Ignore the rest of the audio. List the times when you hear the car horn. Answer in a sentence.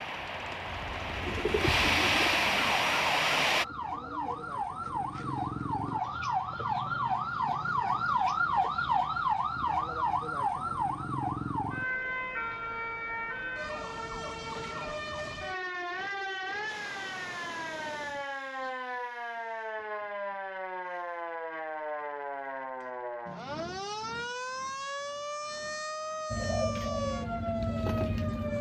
You can't hear the car horn here.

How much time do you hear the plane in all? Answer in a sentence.
You can hear the plane for 4 seconds altogether.